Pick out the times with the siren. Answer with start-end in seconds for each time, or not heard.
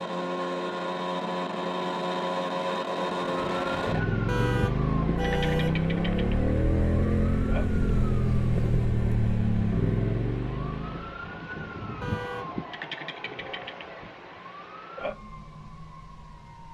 3.1-16.6.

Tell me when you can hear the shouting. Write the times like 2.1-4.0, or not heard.
not heard.